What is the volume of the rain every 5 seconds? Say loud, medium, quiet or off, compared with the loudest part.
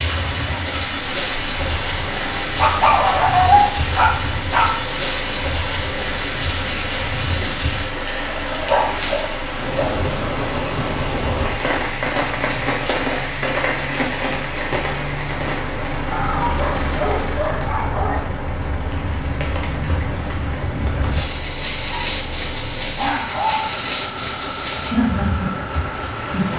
loud, loud, loud, medium, loud, loud.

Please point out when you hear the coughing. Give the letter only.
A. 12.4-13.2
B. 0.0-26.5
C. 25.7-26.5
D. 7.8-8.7
D.